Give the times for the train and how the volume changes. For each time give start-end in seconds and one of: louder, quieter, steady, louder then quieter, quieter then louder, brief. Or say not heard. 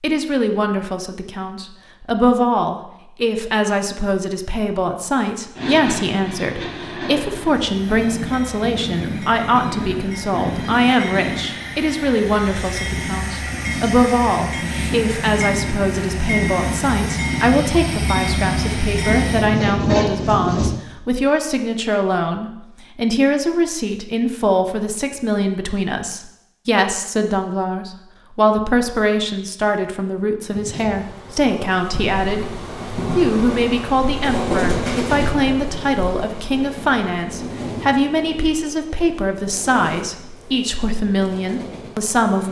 5.5-20.7 louder
30.5-42.4 louder then quieter.